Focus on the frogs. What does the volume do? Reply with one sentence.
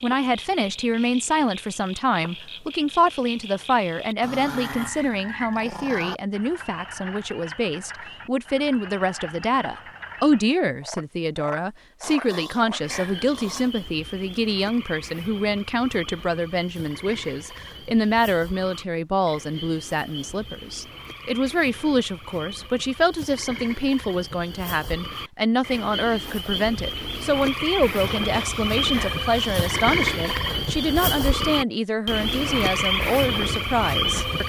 The volume of the frogs goes up.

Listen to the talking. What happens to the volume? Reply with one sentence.
The loudness of the talking stays about the same.